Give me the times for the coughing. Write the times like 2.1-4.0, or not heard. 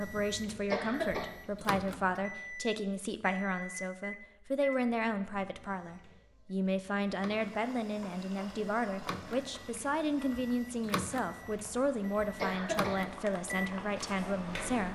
0.7-1.4, 12.3-13.1.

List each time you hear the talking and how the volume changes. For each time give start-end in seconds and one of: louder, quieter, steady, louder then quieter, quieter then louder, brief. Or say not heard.
0.0-14.8 steady.